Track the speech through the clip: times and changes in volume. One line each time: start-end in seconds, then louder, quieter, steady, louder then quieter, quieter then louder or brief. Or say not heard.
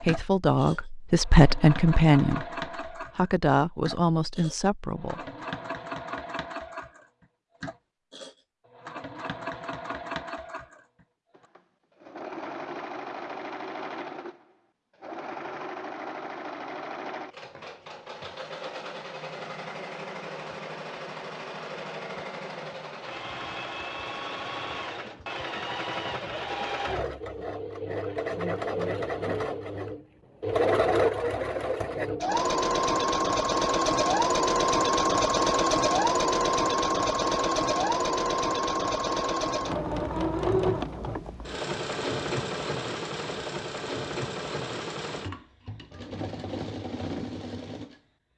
0.0-5.2 louder then quieter.